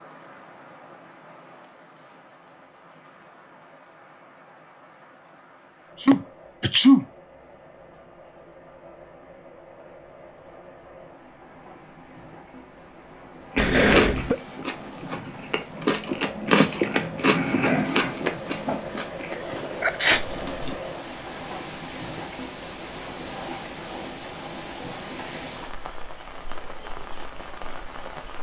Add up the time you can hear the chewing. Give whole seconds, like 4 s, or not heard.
7 s.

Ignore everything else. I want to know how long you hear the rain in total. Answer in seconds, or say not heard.
28 s.